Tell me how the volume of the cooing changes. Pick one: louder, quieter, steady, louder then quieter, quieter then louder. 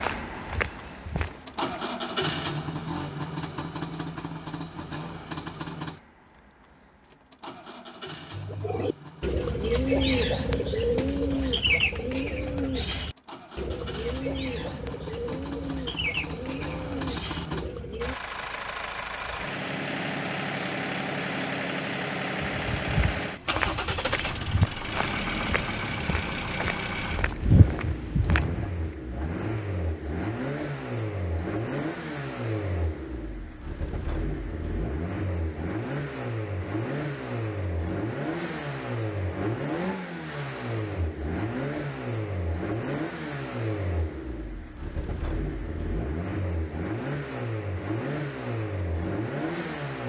quieter.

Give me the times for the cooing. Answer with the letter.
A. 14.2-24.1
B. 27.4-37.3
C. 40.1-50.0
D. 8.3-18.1
D.